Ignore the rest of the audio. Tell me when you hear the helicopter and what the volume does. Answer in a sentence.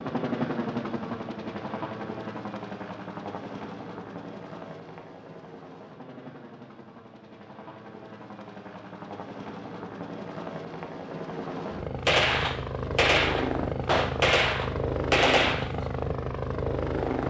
The helicopter can be heard from 0.0 to 17.2 s, getting quieter then louder.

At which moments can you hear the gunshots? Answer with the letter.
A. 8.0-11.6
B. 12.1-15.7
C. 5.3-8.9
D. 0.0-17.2
B.